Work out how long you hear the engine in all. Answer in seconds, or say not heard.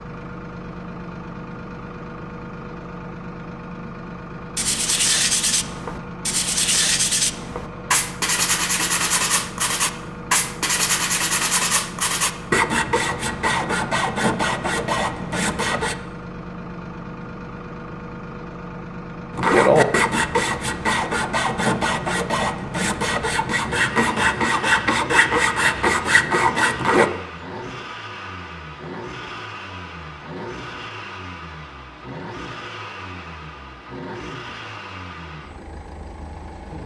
37 s.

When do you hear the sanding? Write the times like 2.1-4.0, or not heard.
4.5-15.9, 19.3-27.1.